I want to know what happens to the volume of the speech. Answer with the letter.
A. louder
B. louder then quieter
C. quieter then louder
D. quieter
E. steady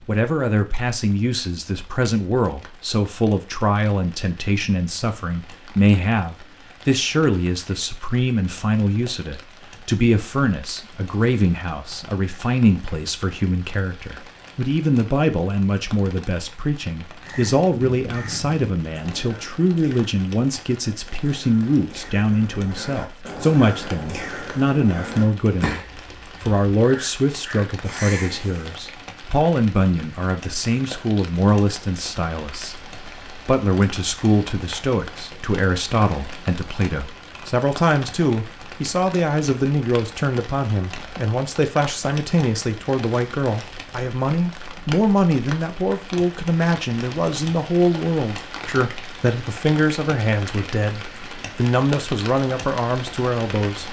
E.